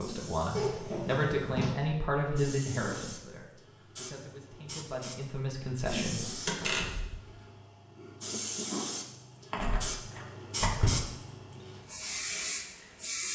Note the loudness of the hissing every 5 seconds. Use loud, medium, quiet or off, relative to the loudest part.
medium, loud, loud.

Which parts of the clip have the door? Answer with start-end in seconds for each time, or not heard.
0.5-1.8, 6.5-7.2, 9.5-10.9.